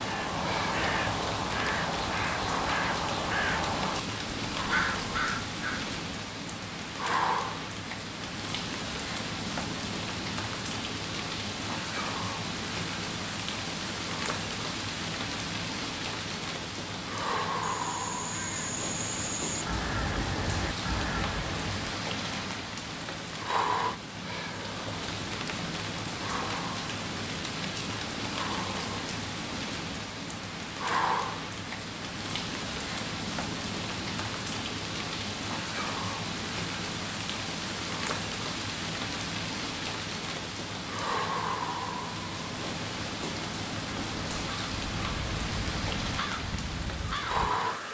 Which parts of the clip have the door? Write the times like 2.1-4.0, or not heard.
not heard.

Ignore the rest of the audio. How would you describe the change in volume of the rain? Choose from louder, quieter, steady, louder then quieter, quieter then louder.
steady.